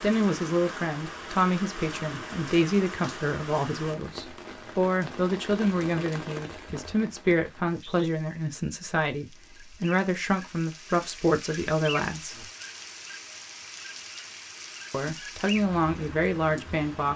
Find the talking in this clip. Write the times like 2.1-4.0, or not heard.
0.0-12.4, 14.9-17.1.